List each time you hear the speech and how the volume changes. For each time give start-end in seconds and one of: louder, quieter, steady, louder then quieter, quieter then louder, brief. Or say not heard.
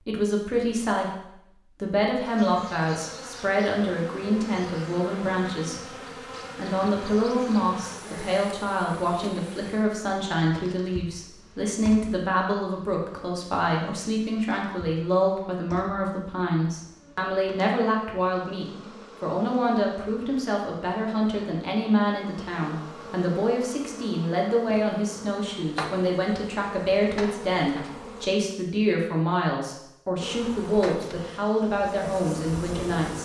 0.0-33.1 steady.